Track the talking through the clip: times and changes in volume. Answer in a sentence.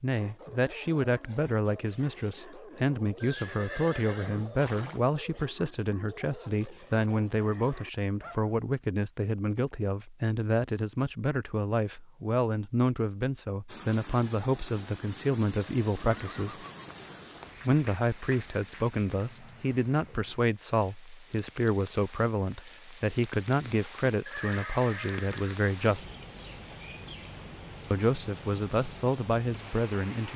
You can hear the talking from 0.0 to 16.6 s, at a steady volume; from 17.6 to 26.1 s, at a steady volume; and briefly from 27.9 to 30.3 s.